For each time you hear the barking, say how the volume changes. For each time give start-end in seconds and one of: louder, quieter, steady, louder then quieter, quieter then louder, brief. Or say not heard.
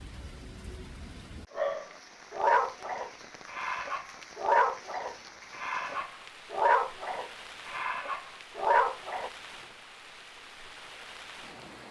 1.6-9.3 quieter then louder.